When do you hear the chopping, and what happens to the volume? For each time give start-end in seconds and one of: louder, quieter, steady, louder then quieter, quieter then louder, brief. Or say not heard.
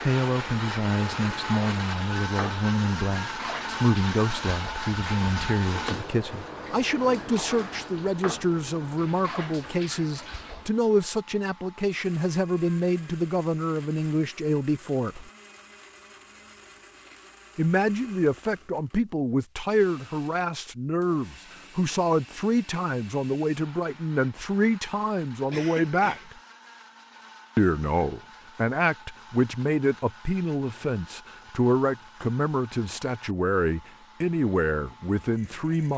not heard.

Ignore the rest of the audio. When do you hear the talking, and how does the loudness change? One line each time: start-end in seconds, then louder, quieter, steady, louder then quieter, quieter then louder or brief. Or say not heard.
0.0-15.3 steady
17.6-26.4 steady
27.6-35.9 steady.